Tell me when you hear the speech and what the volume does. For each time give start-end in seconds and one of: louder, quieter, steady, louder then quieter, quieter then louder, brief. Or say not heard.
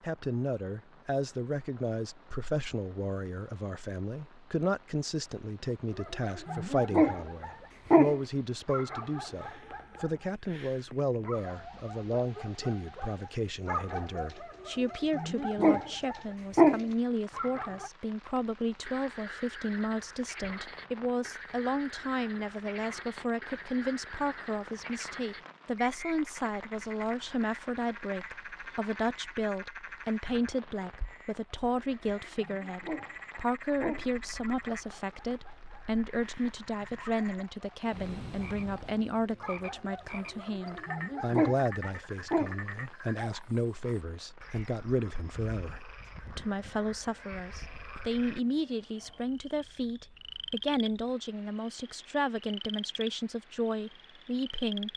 0.0-54.9 steady.